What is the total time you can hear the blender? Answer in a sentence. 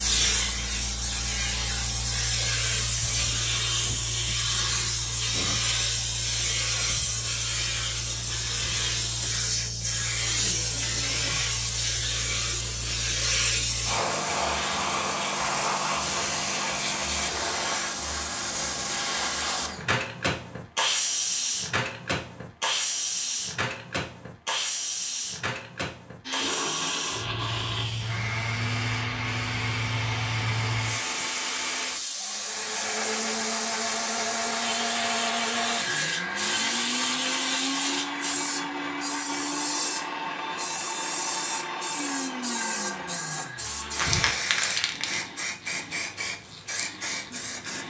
The blender can be heard for 18 seconds in total.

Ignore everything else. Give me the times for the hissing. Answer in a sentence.
You can hear the hissing from 0.0 to 47.8 s.